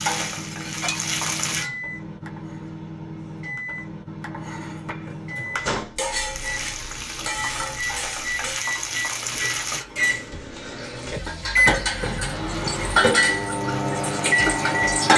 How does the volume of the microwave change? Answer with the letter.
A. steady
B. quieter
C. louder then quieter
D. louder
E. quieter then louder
D.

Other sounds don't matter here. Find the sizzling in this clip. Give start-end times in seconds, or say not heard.
0.0-1.7, 6.2-9.8, 12.4-14.8.